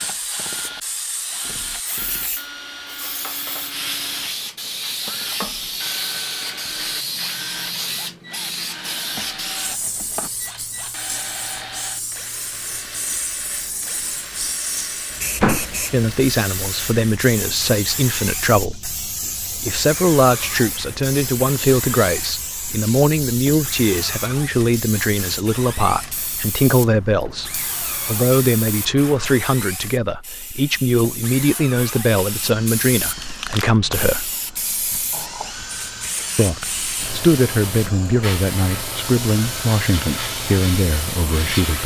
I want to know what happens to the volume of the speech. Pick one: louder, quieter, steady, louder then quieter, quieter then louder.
steady.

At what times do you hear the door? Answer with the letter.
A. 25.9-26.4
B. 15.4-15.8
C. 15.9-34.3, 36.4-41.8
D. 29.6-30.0
B.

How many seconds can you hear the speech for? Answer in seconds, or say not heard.
24 s.